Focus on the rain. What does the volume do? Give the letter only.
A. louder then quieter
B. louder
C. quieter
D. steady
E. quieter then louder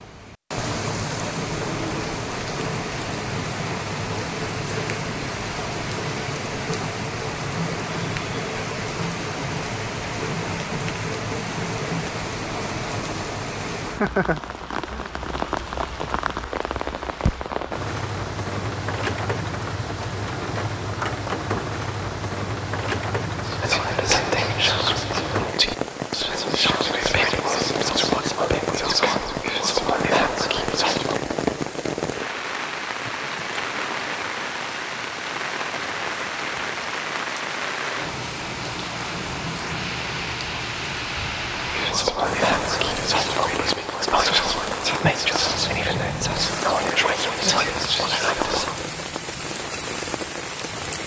D.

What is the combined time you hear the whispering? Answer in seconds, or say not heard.
15 s.